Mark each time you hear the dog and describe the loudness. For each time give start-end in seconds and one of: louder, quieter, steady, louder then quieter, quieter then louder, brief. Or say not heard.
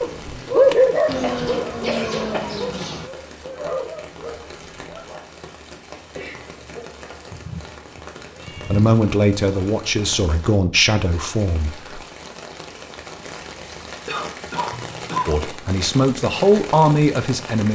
0.0-5.2 quieter.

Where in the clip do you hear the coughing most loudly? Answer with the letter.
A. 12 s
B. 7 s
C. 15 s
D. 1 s
C.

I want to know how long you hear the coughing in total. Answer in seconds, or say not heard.
3 s.